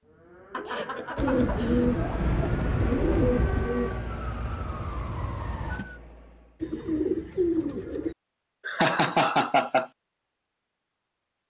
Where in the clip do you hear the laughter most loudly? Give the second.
9 s.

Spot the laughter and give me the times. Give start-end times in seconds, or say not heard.
0.5-1.9, 8.7-9.9.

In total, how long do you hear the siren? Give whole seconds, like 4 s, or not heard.
6 s.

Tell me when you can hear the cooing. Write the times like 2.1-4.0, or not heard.
1.1-4.0, 6.6-8.2.